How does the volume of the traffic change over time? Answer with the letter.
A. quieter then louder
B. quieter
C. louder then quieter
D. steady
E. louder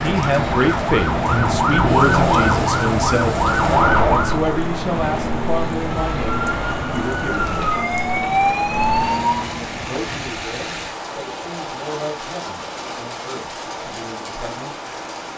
D.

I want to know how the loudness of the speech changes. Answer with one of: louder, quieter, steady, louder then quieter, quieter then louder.
quieter.